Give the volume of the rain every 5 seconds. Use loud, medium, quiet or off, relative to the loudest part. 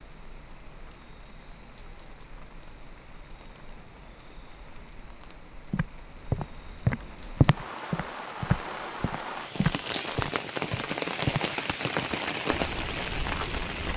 quiet, medium, loud.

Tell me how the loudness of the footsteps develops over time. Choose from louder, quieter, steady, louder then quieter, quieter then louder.
quieter.